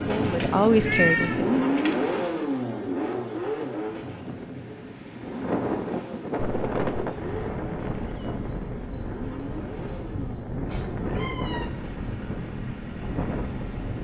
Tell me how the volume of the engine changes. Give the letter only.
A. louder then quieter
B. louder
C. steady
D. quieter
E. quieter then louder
D.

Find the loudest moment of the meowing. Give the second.
1 s.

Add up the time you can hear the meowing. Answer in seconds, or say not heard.
3 s.